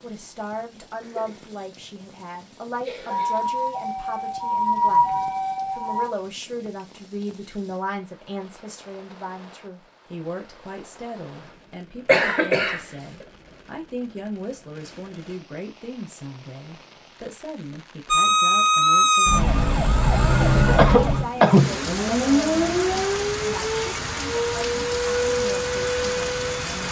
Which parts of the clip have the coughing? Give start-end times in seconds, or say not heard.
1.0-1.6, 2.8-3.5, 12.1-12.8, 20.8-21.8.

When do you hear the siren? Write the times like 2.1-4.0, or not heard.
3.0-6.1, 18.1-26.8.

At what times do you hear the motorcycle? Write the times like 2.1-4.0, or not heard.
not heard.